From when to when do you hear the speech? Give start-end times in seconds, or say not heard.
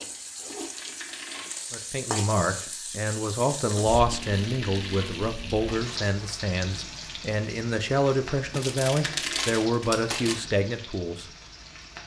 1.7-11.2.